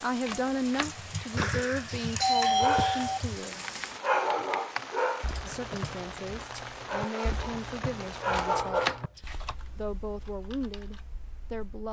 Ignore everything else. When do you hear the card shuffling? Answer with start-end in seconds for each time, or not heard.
0.2-1.5, 8.3-9.6.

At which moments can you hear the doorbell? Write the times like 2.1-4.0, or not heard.
1.4-3.2.